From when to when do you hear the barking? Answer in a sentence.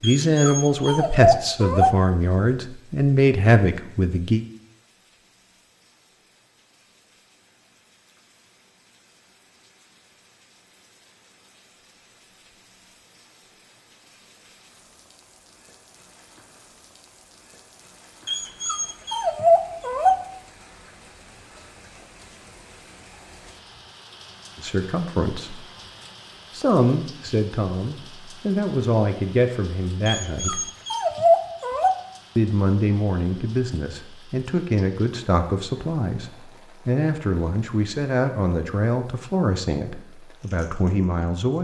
You can hear the barking from 0.0 to 1.9 s, from 18.2 to 20.1 s and from 30.1 to 31.9 s.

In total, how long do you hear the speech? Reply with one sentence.
The speech can be heard for 19 seconds in total.